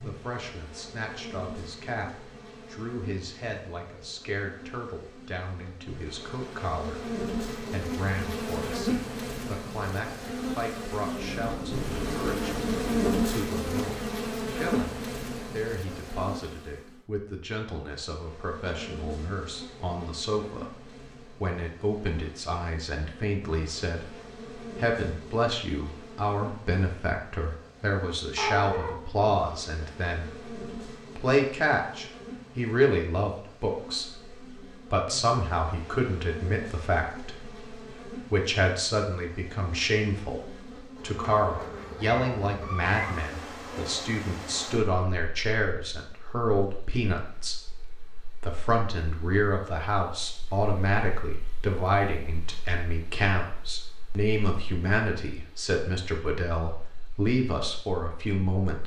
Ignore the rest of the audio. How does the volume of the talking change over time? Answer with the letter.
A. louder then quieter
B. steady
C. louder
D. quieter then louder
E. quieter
C.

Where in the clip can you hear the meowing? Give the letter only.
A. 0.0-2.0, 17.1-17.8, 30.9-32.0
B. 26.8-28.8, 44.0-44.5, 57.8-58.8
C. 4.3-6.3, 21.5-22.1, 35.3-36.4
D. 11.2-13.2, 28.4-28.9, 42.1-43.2
D.